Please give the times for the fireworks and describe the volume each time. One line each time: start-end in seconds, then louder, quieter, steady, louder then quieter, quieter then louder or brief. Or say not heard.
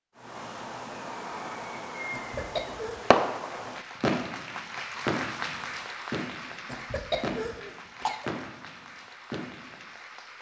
0.2-9.8 louder then quieter.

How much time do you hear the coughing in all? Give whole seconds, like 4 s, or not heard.
3 s.